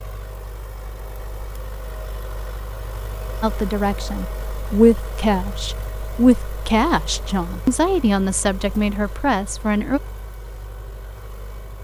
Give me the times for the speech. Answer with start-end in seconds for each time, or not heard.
3.4-10.0.